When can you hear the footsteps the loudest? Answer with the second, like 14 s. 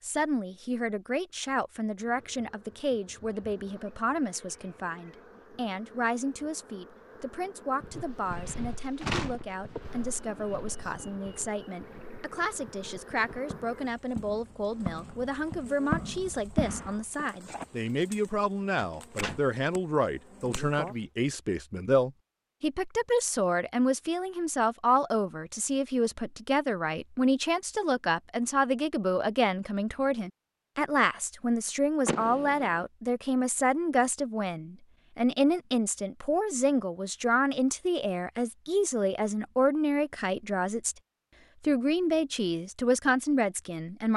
16 s.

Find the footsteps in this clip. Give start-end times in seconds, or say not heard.
7.8-16.9.